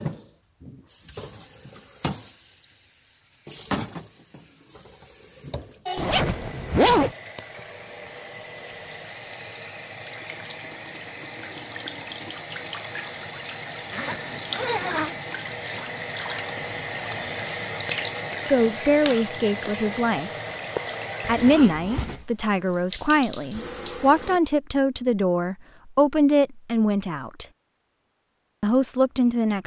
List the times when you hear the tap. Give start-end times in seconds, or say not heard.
0.0-24.4.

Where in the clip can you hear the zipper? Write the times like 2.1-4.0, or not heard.
6.0-7.2, 13.9-15.2, 21.3-22.2.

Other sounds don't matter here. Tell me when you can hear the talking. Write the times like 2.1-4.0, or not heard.
18.4-20.3, 21.2-27.4, 28.6-29.6.